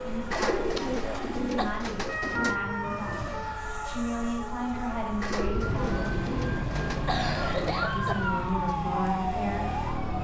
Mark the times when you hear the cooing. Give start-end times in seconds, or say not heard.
0.3-2.6, 5.2-7.1.